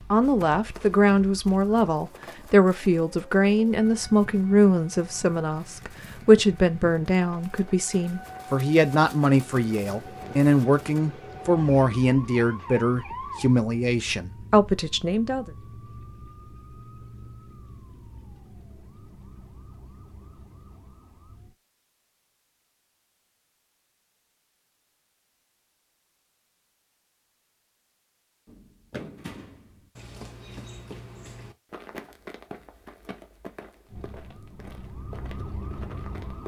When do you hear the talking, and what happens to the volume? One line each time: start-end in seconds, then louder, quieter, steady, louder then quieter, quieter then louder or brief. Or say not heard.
0.1-15.5 steady.